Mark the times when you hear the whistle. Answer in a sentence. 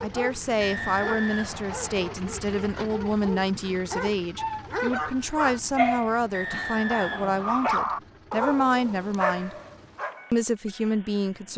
The whistle can be heard from 0.6 to 2.2 s and from 6.3 to 7.7 s.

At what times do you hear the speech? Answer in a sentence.
You can hear the speech from 0.0 to 9.6 s and from 10.3 to 11.5 s.